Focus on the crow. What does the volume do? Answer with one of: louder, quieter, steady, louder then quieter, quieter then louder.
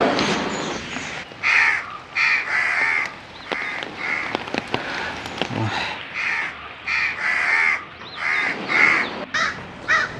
quieter then louder.